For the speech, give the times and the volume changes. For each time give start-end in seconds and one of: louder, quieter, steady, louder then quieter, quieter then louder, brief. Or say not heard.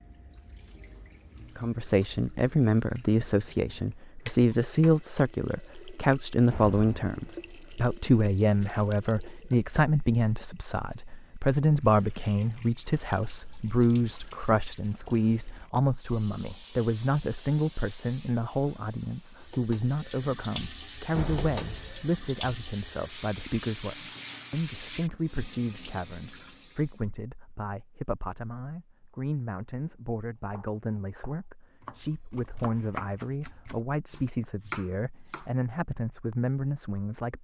1.6-37.3 quieter.